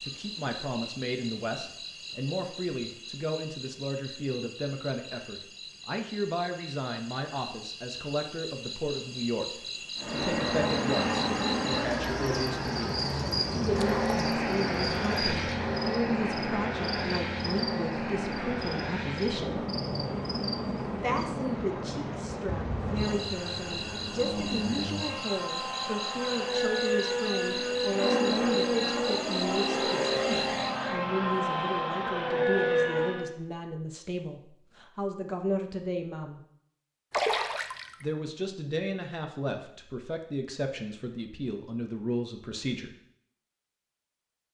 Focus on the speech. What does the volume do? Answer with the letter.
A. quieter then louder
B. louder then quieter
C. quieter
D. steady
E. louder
D.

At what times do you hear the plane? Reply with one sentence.
You can hear the plane from 9.9 to 33.3 s.